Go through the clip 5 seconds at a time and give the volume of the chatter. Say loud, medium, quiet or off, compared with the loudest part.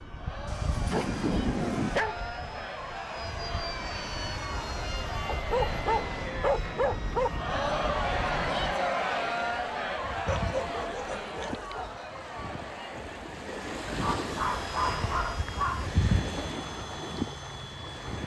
medium, loud, medium, off.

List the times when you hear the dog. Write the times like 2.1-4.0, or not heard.
0.5-2.6, 5.2-7.3, 10.2-11.9, 13.8-15.9.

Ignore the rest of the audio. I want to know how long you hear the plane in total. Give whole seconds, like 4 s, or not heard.
13 s.